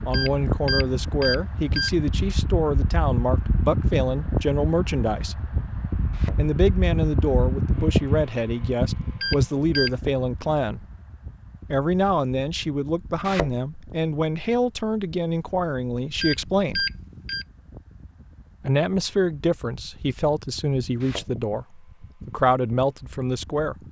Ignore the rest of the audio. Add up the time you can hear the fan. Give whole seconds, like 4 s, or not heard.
24 s.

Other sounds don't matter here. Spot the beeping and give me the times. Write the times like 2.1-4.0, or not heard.
0.1-1.9, 9.2-9.9, 16.2-17.4.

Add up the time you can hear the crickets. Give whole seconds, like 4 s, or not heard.
not heard.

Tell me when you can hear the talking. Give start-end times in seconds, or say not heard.
0.1-5.5, 6.2-10.8, 11.7-16.9, 18.6-23.8.